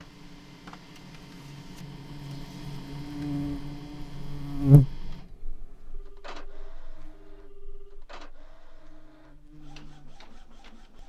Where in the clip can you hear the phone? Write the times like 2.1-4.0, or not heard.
5.9-8.1.